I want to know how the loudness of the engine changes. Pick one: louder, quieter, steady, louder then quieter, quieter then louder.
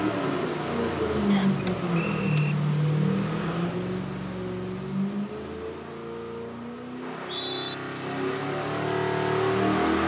quieter then louder.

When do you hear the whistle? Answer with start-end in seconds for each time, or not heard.
1.3-2.5, 7.0-7.8.